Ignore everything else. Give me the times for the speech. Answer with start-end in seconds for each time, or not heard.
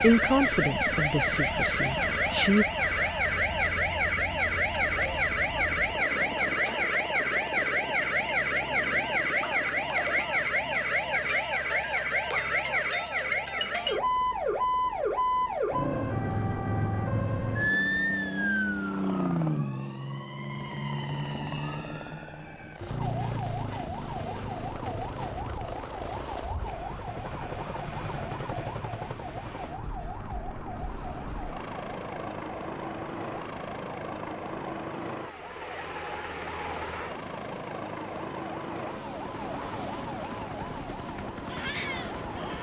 0.0-2.6.